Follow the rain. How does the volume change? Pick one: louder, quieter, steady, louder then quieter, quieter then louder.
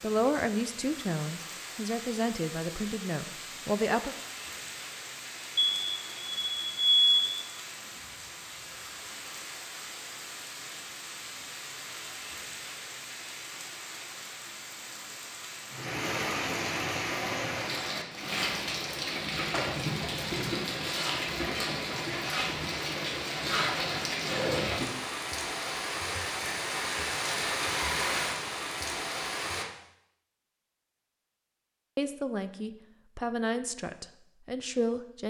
louder.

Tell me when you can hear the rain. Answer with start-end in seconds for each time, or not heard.
0.0-29.6.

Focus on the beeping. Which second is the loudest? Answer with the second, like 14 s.
7 s.